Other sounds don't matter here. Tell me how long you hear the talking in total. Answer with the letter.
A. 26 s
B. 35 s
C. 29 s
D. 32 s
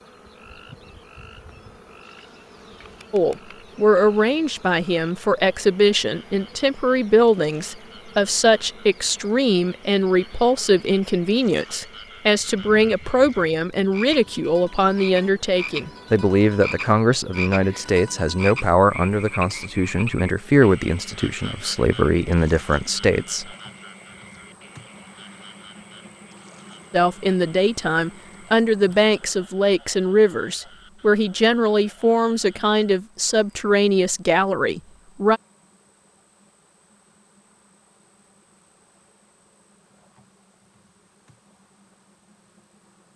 C.